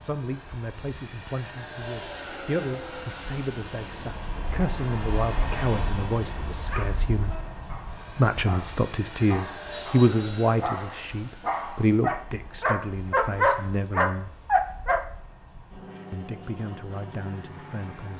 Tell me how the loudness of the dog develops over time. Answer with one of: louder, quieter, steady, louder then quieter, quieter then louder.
louder.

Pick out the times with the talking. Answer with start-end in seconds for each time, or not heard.
0.0-7.3, 8.2-14.3, 16.1-18.1.